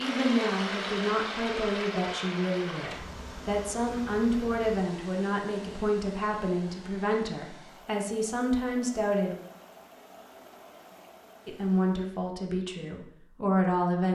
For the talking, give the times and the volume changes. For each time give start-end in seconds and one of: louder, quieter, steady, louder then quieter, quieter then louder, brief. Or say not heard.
0.0-9.3 steady
11.4-14.1 brief.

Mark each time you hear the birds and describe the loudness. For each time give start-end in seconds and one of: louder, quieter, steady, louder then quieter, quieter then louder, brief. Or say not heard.
not heard.